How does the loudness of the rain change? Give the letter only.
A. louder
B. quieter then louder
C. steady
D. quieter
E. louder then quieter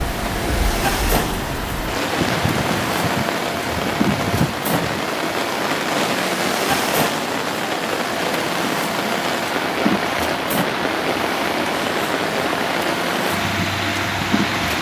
C.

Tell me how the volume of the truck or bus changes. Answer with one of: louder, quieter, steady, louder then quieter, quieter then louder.
steady.